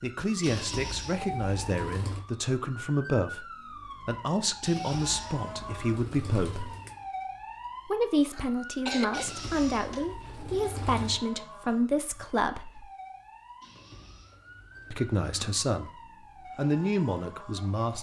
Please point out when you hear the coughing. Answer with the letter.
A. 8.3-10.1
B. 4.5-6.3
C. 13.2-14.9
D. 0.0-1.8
A.